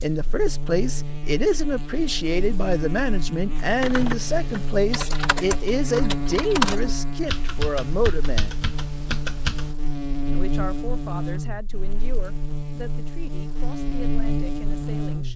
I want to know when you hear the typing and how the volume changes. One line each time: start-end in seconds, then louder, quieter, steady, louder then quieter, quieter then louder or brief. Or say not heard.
3.5-9.8 louder then quieter.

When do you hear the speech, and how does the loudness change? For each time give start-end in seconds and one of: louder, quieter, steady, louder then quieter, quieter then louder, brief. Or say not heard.
0.0-8.6 steady
10.2-15.3 quieter.